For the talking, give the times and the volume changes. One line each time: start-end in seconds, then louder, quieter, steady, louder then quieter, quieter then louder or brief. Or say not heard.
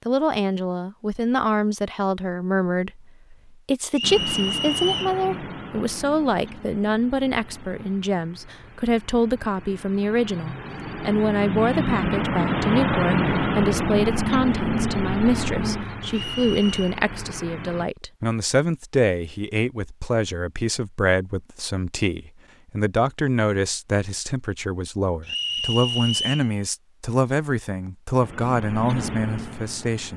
0.1-30.1 steady.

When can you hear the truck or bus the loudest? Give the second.
13 s.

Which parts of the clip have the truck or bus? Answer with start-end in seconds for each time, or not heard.
4.0-17.9, 28.2-30.1.